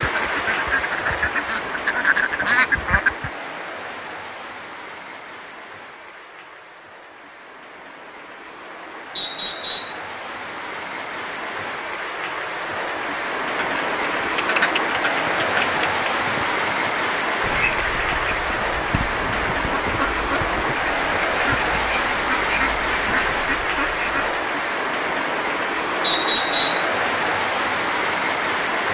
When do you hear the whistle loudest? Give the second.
26 s.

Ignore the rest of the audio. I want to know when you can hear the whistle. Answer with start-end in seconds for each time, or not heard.
9.2-10.0, 26.0-26.9.